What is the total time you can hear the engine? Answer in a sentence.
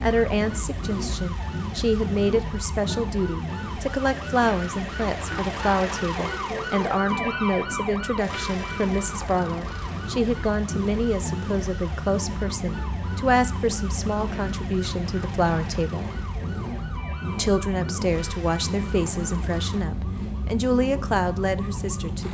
You can hear the engine for 22 seconds altogether.